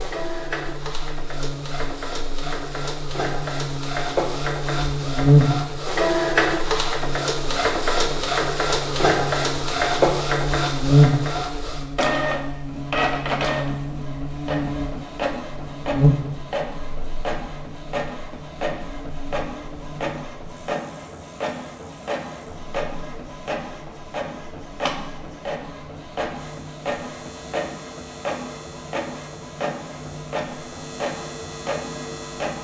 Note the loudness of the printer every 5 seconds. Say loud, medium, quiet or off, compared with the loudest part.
medium, loud, loud, medium, medium, medium, medium.